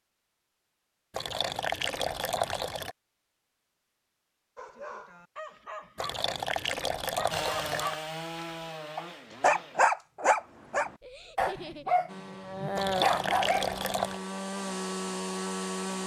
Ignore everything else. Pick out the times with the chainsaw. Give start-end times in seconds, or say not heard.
7.3-9.9, 12.1-16.0.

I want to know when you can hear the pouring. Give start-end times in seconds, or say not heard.
1.1-3.0, 6.0-8.0, 12.8-14.2.